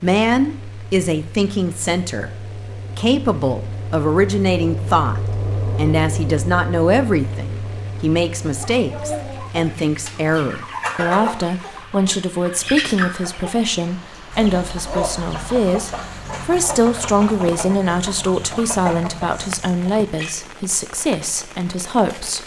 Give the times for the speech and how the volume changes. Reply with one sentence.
You can hear the speech from 0.0 to 22.4 s, at a steady volume.